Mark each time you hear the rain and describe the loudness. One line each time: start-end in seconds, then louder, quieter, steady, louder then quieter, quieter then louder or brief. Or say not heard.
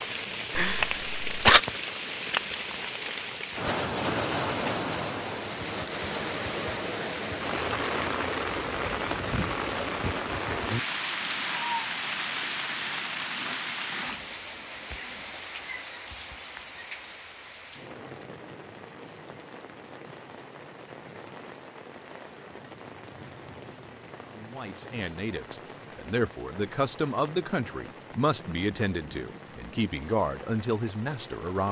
0.0-31.6 quieter.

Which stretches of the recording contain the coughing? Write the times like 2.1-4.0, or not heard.
0.6-1.6.